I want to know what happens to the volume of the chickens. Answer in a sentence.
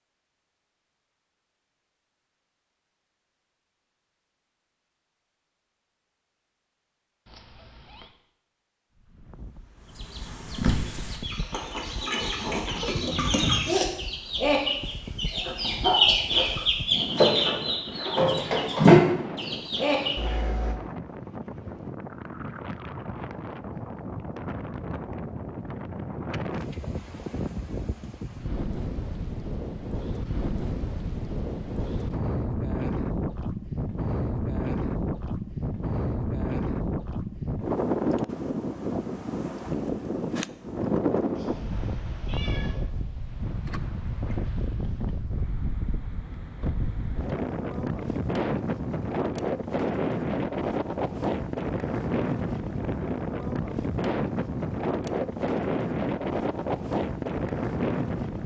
The volume of the chickens goes up.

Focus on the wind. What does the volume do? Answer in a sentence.
The loudness of the wind goes up.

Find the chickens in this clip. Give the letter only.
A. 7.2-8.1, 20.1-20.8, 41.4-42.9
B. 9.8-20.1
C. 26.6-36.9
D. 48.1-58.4
B.